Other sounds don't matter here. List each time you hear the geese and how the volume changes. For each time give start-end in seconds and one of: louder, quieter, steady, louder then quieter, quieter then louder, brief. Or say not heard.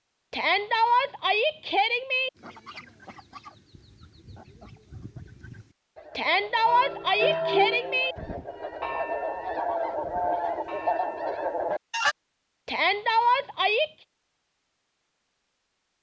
2.4-12.2 louder.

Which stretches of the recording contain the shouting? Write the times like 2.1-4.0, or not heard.
0.3-2.3, 6.2-8.2, 12.7-13.9.